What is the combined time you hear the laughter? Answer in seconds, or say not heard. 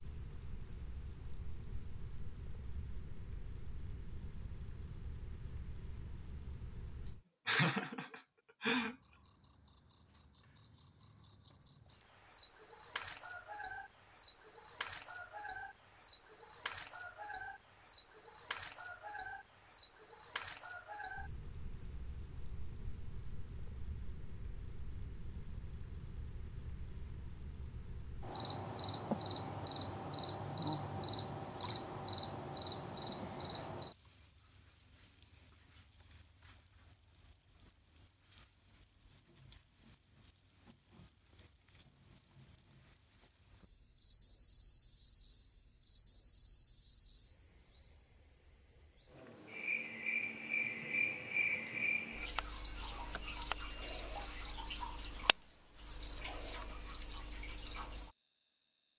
2 s.